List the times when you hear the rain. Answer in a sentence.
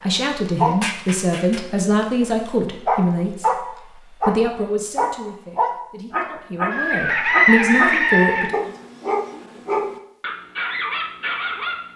You can't hear the rain here.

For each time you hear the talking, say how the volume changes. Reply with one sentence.
The talking can be heard from 0.0 to 8.6 s, getting quieter then louder.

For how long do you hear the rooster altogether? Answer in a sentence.
You can hear the rooster for 2 seconds altogether.